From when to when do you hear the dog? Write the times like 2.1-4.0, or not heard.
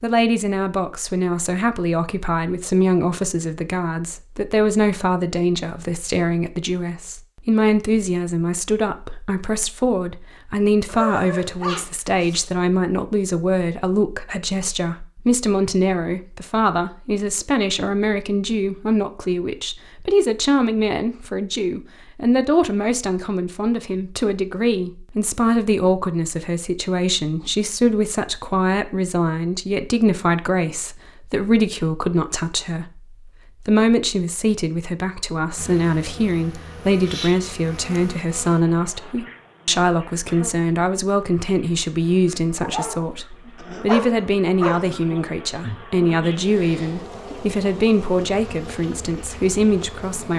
10.8-12.5, 42.6-45.0.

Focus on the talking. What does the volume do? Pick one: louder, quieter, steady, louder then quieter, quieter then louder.
steady.